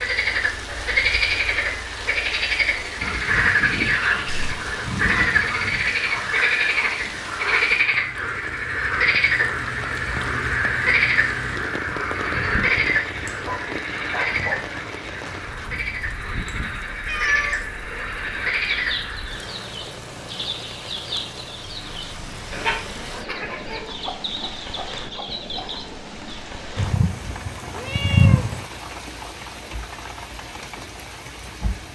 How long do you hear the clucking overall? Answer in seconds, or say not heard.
8 s.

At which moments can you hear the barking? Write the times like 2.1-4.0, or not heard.
13.4-14.8.